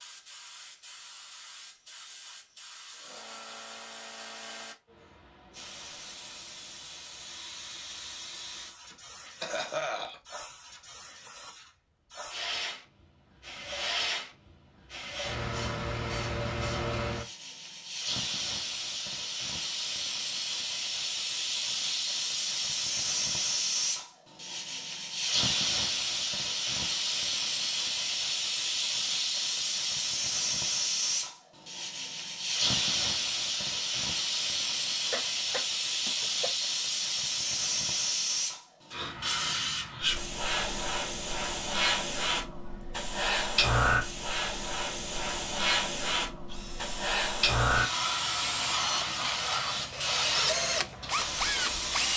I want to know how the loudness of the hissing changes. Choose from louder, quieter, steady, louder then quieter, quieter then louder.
louder.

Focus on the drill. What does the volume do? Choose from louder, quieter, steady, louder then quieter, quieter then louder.
louder.